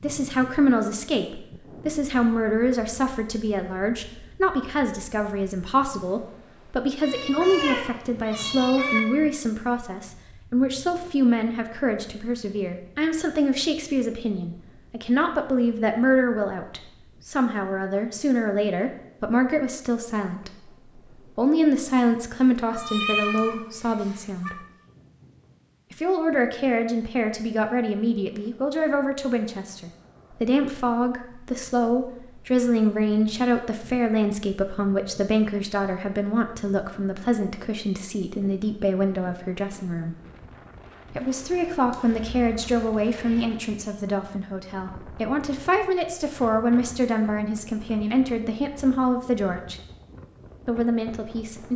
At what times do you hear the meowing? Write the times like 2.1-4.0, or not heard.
7.0-9.0, 22.7-24.5, 41.9-43.5.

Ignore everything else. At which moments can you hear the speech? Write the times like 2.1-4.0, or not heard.
0.0-24.6, 25.9-40.1, 41.1-49.8, 50.6-51.7.